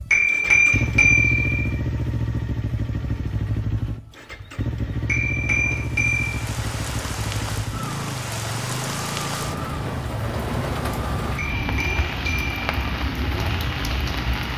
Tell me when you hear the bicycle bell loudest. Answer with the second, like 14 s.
1 s.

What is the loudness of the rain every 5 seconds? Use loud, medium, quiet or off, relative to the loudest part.
off, loud, loud.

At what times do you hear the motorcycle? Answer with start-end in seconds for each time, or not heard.
0.0-14.5.